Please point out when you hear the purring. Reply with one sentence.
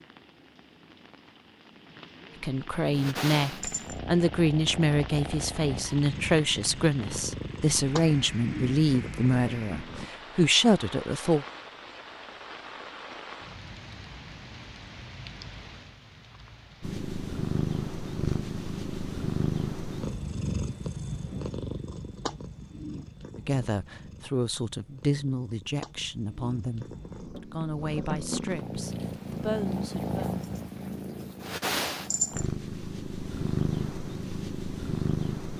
The purring can be heard from 2.9 to 10.1 s and from 16.8 to 35.5 s.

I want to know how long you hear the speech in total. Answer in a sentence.
You can hear the speech for 16 seconds altogether.